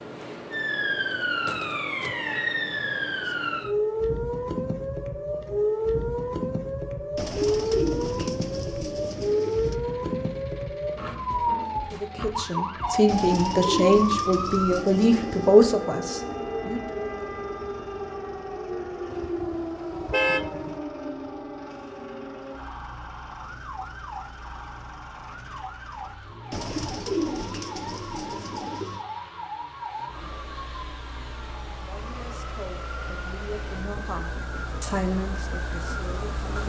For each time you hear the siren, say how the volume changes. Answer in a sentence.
The siren can be heard from 0.0 to 36.6 s, getting quieter.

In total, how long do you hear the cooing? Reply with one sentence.
You can hear the cooing for 8 seconds altogether.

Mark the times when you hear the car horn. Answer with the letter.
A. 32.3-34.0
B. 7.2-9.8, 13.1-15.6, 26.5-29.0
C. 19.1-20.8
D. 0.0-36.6
C.